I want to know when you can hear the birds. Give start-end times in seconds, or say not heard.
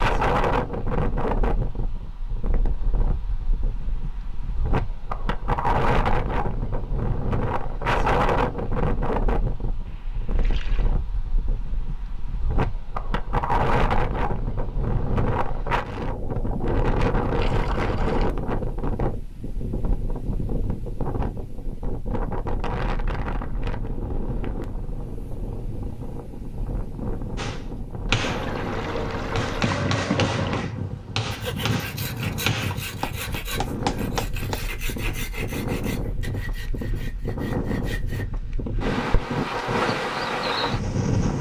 not heard.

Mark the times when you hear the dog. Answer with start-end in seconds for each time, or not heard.
not heard.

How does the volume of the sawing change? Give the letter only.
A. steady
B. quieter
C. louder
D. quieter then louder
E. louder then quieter
B.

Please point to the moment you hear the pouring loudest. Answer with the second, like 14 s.
30 s.